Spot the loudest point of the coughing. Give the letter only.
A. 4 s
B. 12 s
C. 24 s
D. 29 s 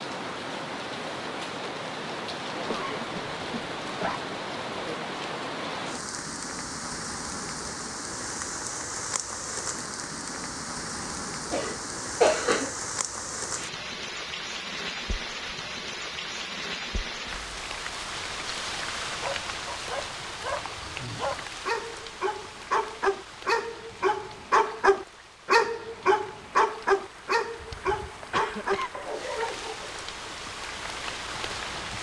B.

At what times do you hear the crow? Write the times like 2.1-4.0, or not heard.
not heard.